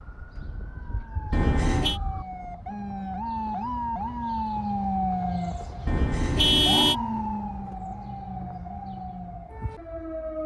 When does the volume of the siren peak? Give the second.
5 s.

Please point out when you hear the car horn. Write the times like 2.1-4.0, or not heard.
1.3-2.0, 5.8-7.0.